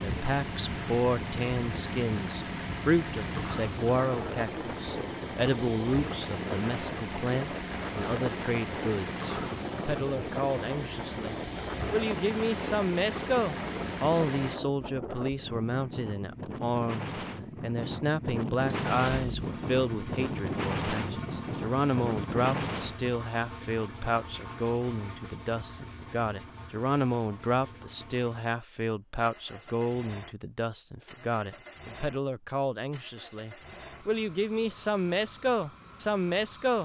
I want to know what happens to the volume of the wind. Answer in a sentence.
The volume of the wind goes up.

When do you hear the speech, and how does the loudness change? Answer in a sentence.
The speech can be heard from 0.0 to 36.8 s, at a steady volume.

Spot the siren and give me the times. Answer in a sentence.
You can't hear the siren here.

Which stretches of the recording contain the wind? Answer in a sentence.
You can hear the wind from 0.0 to 23.1 s.